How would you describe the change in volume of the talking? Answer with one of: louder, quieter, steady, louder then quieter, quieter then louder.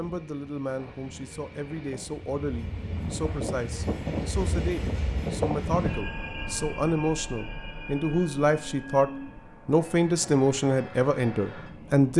louder.